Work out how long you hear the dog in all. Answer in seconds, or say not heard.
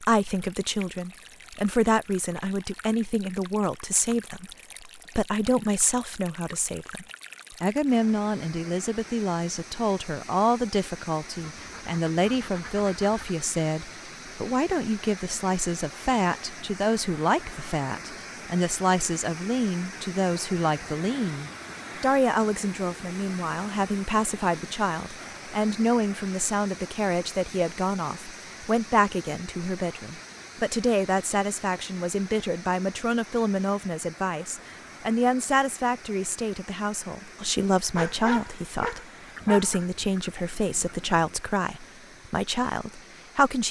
2 s.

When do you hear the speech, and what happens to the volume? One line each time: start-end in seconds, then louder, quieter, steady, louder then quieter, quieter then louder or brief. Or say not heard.
0.0-43.6 steady.